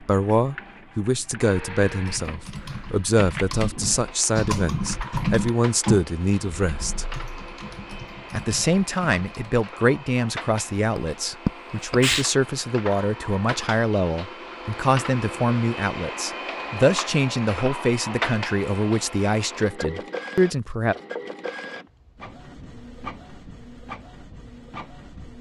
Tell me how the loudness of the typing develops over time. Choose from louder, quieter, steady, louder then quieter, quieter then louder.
louder then quieter.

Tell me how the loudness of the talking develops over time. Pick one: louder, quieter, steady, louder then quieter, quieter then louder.
steady.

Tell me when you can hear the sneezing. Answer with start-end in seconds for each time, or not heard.
10.9-12.2.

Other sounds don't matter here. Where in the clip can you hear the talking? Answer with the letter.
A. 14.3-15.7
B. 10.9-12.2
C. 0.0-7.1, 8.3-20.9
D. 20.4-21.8
C.